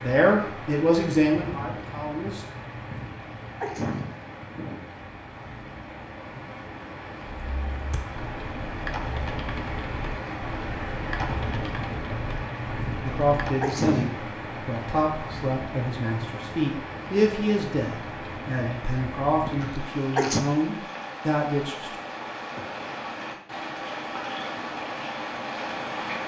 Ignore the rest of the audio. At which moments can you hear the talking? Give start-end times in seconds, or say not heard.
0.0-2.5, 13.1-21.9.